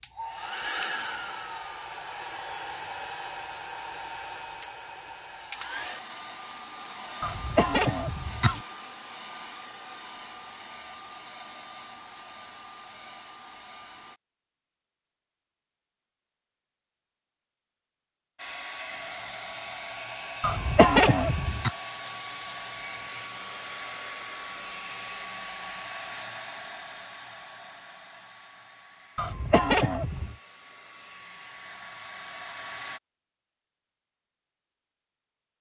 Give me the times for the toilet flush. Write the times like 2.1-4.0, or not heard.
not heard.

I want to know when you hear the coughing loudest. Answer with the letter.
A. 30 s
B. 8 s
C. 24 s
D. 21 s
D.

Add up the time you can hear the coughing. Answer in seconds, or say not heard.
4 s.